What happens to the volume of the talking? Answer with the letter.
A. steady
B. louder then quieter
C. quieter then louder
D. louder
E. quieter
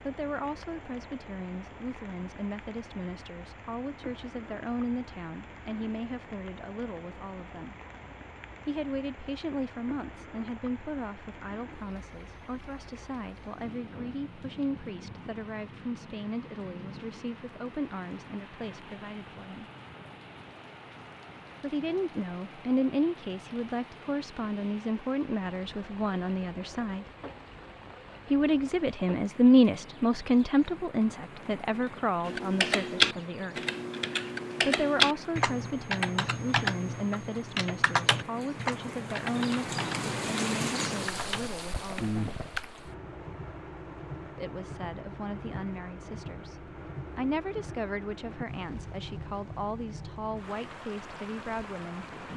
B.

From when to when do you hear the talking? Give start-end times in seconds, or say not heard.
0.1-7.8, 8.7-19.6, 21.6-27.1, 28.3-33.5, 34.6-42.4, 44.4-52.3.